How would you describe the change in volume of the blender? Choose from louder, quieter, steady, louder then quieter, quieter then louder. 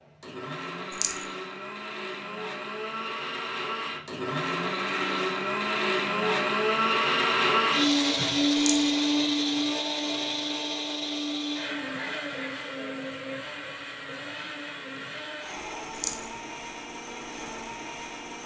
louder then quieter.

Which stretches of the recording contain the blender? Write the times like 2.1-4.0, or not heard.
0.0-18.4.